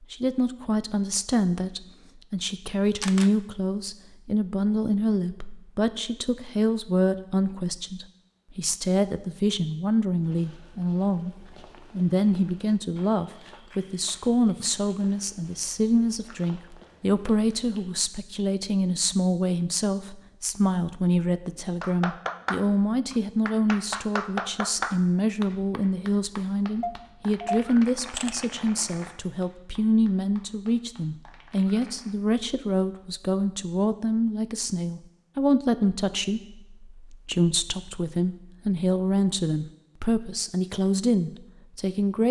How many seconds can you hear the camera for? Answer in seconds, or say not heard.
2 s.